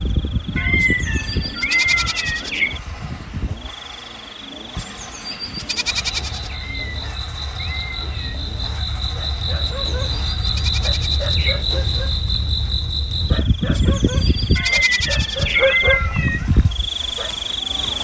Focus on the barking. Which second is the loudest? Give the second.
16 s.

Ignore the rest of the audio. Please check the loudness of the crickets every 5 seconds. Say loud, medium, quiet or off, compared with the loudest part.
medium, medium, loud, loud.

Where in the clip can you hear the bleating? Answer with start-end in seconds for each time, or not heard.
0.8-2.8, 4.8-6.5, 9.6-11.7, 13.7-15.8.